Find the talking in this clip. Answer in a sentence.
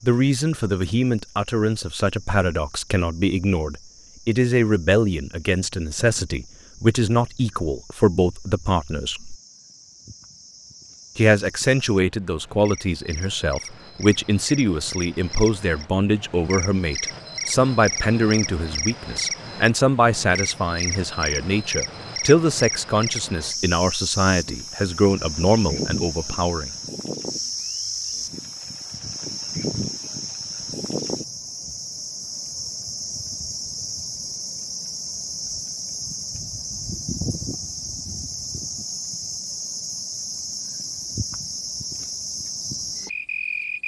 The talking can be heard from 0.0 to 9.3 s and from 11.2 to 26.7 s.